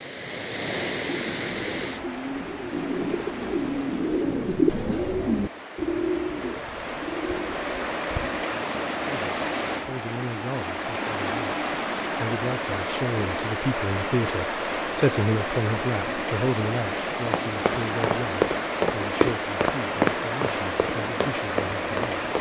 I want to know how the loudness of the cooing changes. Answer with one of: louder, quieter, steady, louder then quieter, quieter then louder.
louder then quieter.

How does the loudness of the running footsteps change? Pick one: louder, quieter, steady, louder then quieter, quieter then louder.
quieter.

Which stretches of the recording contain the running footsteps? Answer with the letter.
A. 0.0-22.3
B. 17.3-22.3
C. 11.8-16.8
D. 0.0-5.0
B.